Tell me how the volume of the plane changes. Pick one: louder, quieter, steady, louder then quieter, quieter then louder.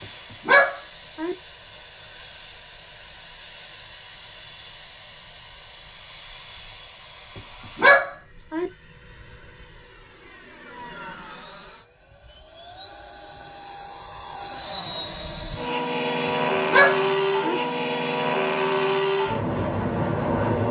louder.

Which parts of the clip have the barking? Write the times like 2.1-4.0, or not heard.
0.5-1.4, 7.8-8.7, 16.7-17.6.